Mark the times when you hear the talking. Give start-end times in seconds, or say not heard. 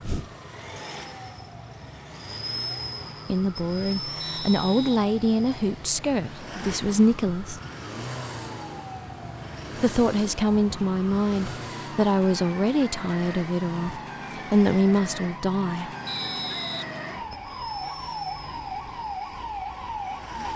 3.2-7.6, 9.8-15.9.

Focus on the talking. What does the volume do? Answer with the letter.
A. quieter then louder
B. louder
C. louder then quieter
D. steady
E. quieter
D.